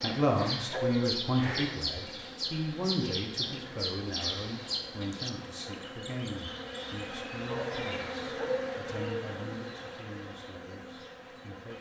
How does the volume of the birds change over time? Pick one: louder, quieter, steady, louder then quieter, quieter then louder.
quieter.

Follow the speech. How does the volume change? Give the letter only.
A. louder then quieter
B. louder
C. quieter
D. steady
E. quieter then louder
C.